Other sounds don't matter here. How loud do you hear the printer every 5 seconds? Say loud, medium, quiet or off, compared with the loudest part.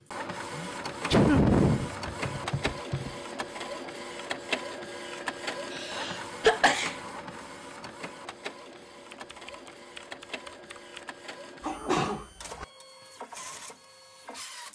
loud, loud, medium.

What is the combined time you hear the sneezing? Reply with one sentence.
The sneezing can be heard for 4 seconds in total.